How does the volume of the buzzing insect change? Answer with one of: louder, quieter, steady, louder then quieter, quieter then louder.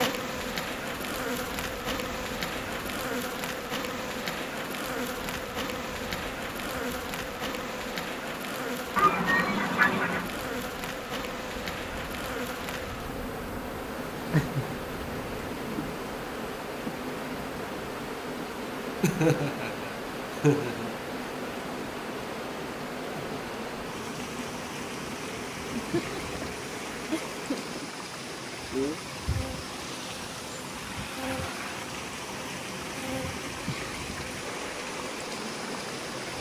quieter.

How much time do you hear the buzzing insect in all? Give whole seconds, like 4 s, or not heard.
36 s.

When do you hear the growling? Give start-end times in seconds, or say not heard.
14.3-15.9.